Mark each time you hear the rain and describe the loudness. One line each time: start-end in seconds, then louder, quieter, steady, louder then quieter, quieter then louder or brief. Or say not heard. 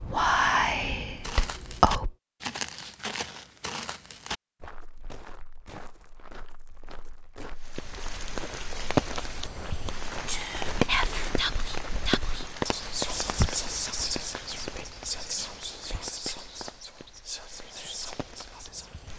7.7-19.1 quieter.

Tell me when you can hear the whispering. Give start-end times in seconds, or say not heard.
0.0-2.1, 10.2-19.1.